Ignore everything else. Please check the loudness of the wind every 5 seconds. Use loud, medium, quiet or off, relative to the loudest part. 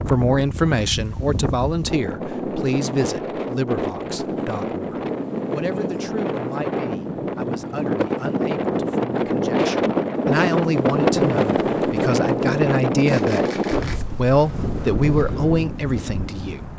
medium, loud, loud, medium.